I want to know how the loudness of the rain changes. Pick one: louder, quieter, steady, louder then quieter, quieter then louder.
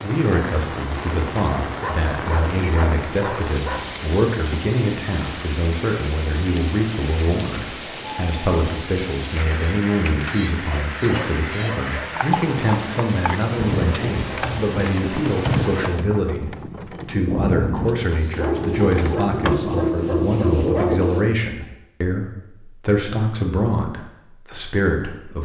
steady.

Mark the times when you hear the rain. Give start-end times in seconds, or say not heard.
0.0-16.1.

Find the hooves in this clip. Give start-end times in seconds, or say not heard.
12.2-21.1.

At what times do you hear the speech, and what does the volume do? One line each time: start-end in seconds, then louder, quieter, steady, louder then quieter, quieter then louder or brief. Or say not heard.
0.0-25.4 steady.